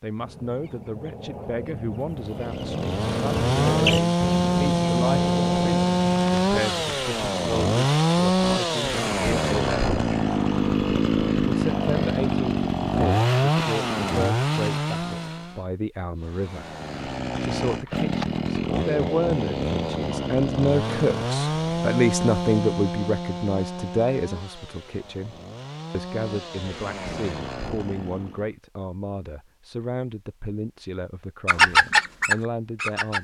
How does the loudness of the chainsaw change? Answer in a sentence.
The volume of the chainsaw goes down.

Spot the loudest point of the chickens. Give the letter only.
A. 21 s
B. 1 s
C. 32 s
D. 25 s
C.